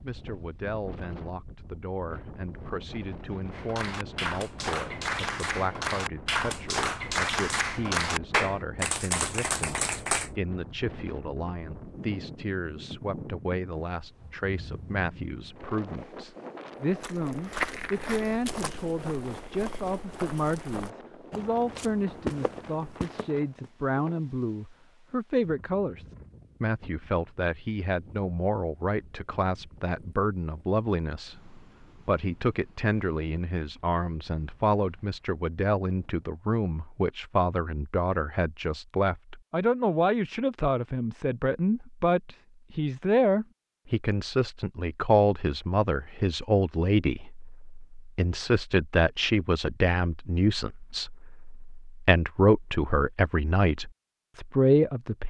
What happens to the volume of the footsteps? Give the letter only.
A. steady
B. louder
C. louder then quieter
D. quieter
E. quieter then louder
E.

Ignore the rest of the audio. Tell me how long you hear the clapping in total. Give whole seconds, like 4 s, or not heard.
7 s.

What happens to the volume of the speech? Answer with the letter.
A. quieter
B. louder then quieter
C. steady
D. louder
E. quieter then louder
D.